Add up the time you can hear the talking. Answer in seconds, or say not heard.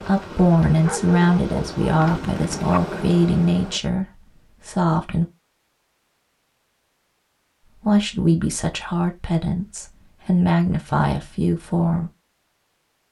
10 s.